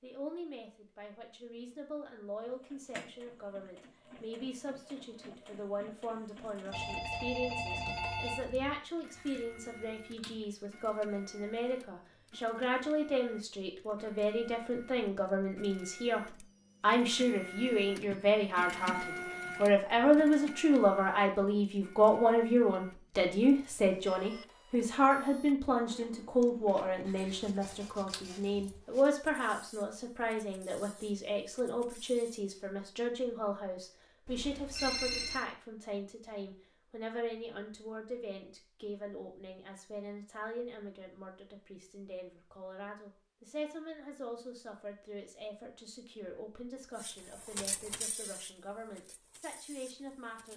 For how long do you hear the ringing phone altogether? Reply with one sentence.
The ringing phone can be heard for 3 seconds in total.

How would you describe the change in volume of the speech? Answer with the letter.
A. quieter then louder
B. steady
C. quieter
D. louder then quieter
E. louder
D.